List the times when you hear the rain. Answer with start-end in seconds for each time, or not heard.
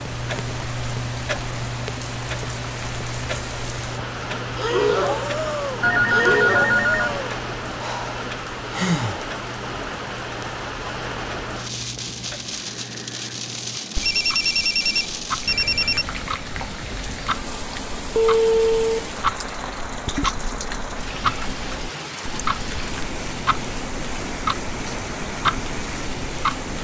0.0-26.7.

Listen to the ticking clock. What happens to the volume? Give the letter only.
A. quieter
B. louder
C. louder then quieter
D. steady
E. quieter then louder
E.